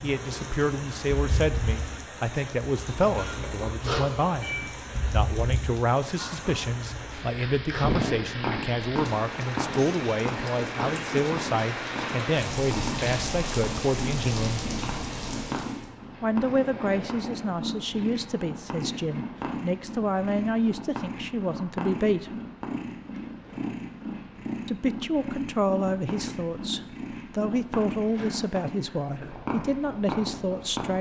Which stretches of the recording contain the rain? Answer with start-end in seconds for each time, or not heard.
0.0-15.9.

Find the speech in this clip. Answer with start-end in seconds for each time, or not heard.
0.0-14.7, 16.2-22.4, 24.6-30.9.